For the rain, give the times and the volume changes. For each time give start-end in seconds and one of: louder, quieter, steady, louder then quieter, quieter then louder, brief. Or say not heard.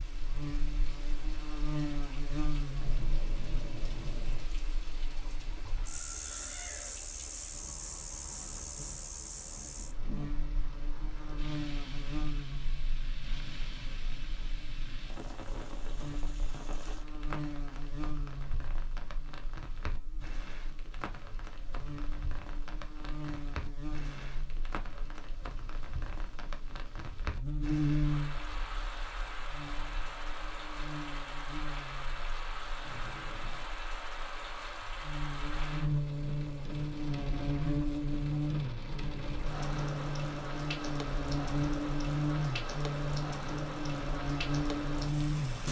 0.0-45.6 louder.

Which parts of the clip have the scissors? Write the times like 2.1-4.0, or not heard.
2.8-4.5, 32.8-33.7.